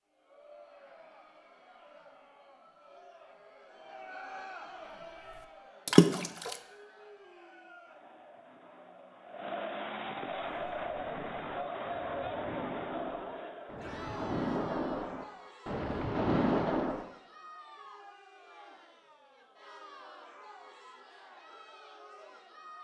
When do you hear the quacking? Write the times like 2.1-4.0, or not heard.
not heard.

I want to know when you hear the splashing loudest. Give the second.
6 s.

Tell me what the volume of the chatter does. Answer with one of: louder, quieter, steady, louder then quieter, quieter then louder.
louder then quieter.